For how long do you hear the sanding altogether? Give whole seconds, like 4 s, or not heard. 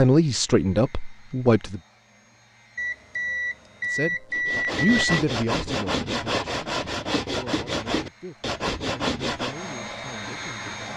6 s.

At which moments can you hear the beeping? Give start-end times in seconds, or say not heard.
2.8-5.0.